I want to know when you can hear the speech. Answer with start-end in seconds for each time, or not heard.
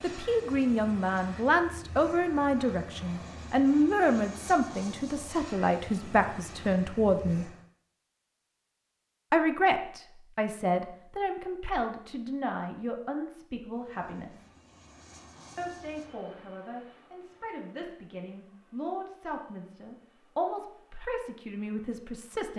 0.0-7.5, 9.3-14.4, 15.6-22.5.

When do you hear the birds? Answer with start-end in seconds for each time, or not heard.
not heard.